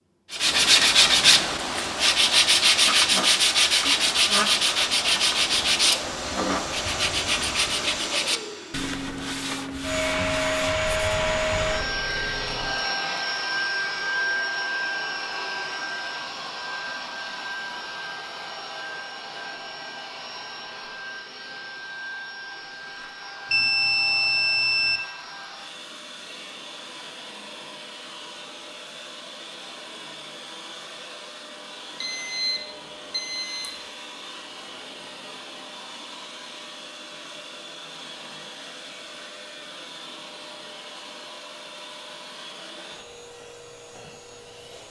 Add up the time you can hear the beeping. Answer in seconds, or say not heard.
5 s.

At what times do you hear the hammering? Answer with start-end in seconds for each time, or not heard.
not heard.